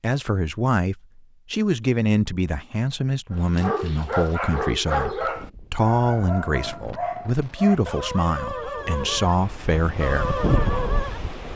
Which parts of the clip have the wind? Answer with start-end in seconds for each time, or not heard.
5.0-11.5.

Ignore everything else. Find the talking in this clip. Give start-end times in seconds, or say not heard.
0.0-10.4.